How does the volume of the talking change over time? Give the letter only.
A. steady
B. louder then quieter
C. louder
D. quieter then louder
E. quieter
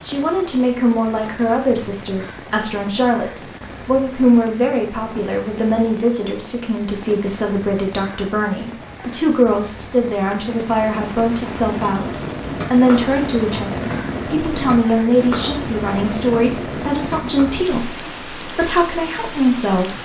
A.